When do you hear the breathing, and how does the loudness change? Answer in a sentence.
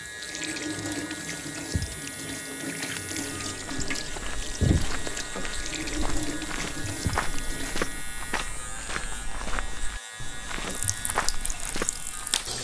The breathing can't be heard in this clip.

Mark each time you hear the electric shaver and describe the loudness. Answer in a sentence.
You can hear the electric shaver from 0.0 to 12.5 s, at a steady volume.